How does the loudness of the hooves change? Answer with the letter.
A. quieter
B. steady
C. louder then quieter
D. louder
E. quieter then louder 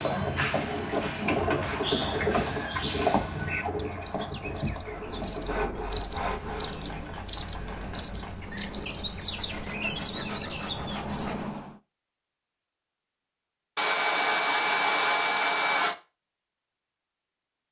A.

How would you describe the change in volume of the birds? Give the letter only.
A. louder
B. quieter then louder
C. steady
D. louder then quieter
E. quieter
A.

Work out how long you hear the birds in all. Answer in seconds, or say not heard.
12 s.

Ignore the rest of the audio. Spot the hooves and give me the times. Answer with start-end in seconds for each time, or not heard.
0.0-8.5.